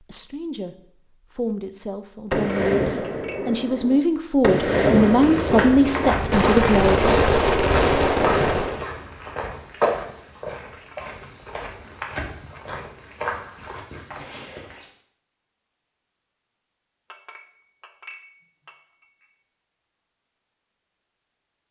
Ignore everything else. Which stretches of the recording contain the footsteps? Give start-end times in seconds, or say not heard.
4.8-14.9.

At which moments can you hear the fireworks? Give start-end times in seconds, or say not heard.
2.3-8.8.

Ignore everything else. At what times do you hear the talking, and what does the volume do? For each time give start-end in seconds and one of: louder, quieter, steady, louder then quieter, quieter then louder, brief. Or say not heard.
0.0-7.2 louder.